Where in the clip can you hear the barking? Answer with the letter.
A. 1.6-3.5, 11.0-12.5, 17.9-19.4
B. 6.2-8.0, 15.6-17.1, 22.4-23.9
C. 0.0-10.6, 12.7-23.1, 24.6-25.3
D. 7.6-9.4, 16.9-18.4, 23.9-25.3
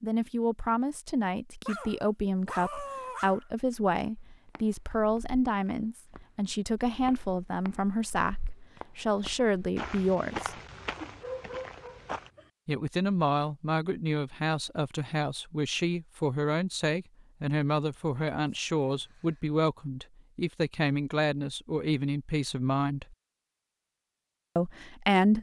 A.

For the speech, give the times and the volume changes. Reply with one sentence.
The speech can be heard from 0.0 to 10.6 s, at a steady volume; from 12.7 to 23.1 s, at a steady volume; and briefly from 24.6 to 25.3 s.